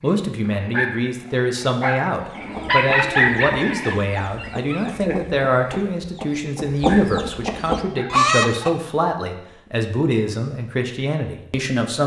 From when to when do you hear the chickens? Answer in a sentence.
The chickens can be heard from 2.2 to 8.8 s.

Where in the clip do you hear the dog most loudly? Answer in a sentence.
The loudest moment of the dog is at 3 seconds.